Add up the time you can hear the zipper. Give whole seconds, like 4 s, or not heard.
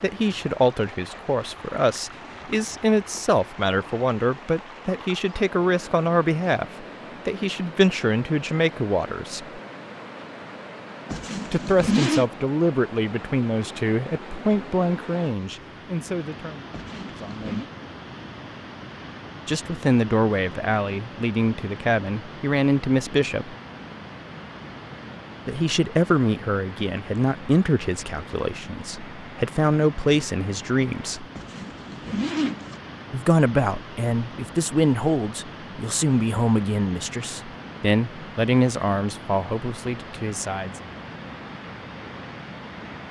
4 s.